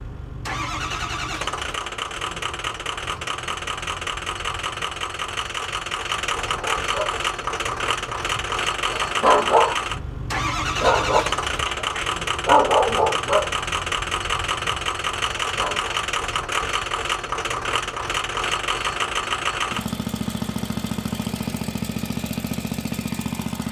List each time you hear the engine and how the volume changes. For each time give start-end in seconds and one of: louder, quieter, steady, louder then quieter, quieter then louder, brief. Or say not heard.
0.0-23.6 steady.